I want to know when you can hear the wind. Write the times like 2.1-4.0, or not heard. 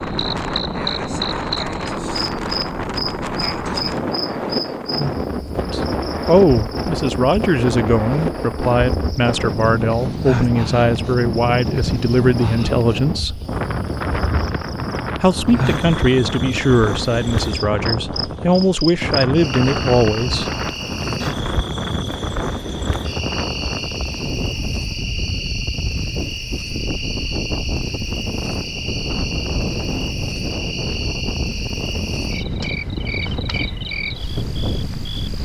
0.0-35.4.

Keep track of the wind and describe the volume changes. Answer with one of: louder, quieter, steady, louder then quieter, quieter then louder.
steady.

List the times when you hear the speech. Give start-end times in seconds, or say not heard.
5.7-13.4, 15.2-20.5.